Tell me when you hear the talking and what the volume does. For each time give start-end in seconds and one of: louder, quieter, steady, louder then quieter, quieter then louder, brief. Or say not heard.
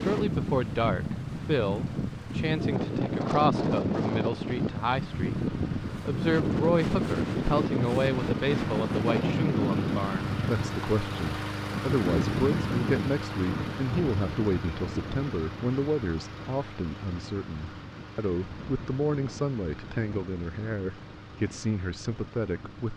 0.0-22.9 steady.